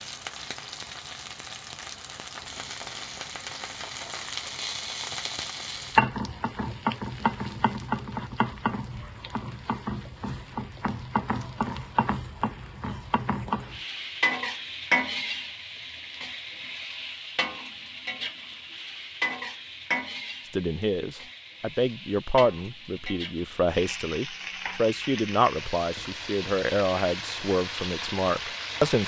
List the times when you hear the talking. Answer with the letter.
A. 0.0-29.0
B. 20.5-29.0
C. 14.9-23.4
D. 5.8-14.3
B.